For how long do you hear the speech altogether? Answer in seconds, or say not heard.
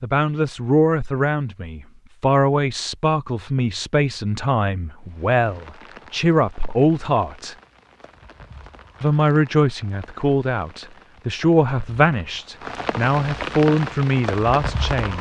14 s.